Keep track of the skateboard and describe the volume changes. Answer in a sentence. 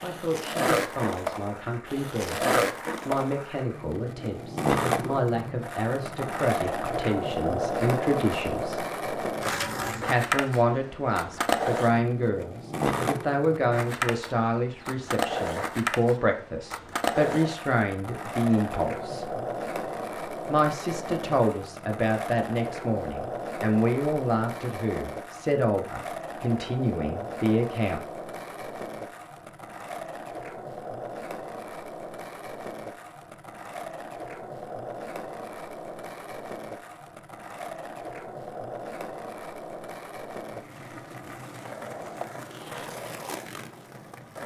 The loudness of the skateboard goes down.